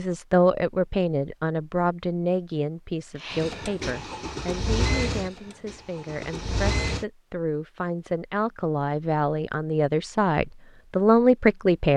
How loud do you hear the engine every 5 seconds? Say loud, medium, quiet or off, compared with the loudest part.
loud, loud, off.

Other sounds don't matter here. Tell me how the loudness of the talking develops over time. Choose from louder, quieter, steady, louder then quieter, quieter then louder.
quieter then louder.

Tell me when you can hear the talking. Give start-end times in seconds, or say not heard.
0.0-11.9.